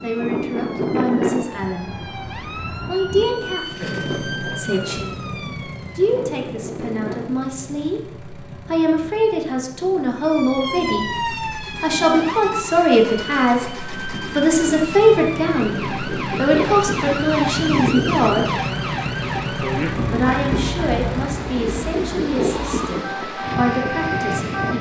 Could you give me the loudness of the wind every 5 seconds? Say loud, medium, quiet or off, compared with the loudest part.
loud, medium, medium, loud, loud.